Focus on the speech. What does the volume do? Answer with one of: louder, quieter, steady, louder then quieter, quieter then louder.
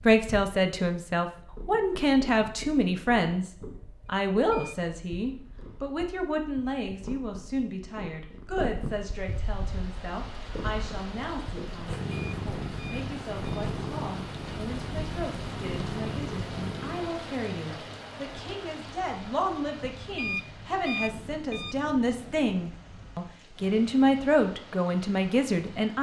quieter then louder.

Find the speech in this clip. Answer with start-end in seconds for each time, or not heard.
0.0-25.9.